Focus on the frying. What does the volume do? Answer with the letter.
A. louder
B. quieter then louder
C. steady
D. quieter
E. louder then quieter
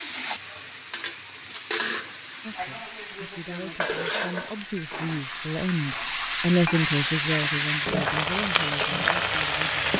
A.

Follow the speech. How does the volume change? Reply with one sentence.
The volume of the speech goes up, then down.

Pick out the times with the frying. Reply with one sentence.
The frying can be heard from 0.0 to 9.9 s.